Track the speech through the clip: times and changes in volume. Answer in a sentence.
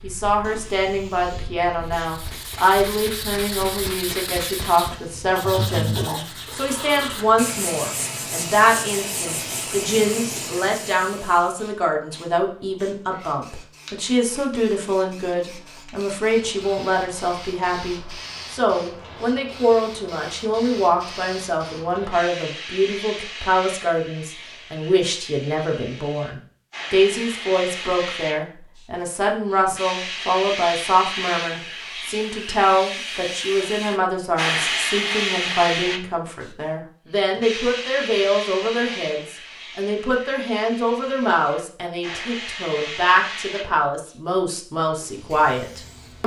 The speech can be heard from 0.0 to 46.2 s, at a steady volume.